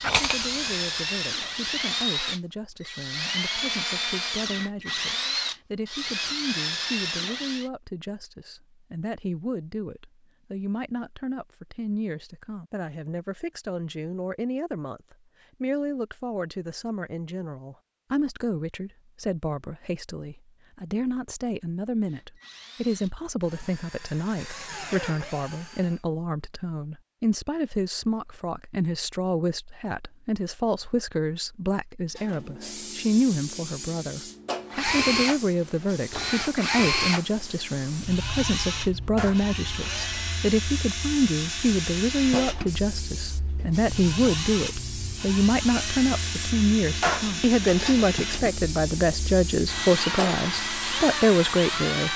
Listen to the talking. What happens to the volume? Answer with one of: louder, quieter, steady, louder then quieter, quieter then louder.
louder.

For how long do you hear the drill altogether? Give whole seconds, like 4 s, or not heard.
29 s.